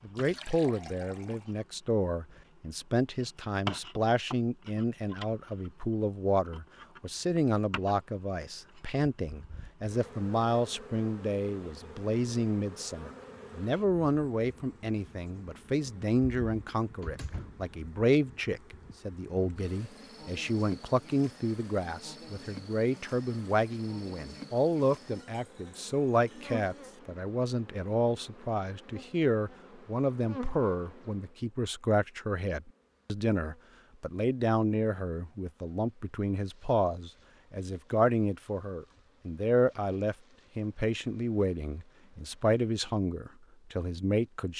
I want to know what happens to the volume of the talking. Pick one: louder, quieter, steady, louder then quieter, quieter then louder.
steady.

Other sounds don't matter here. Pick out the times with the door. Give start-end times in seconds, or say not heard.
16.9-17.6.